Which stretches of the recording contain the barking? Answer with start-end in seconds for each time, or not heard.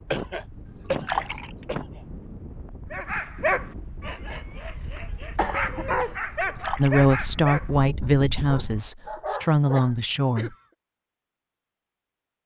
2.9-9.9.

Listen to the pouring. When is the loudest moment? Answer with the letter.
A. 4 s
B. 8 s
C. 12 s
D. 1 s
D.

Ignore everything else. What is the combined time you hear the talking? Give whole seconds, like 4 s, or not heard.
4 s.